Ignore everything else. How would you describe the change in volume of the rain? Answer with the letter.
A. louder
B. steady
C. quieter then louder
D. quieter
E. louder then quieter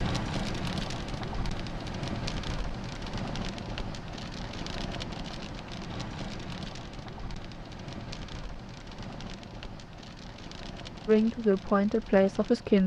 D.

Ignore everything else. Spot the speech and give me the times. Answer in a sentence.
You can hear the speech from 11.1 to 12.8 s.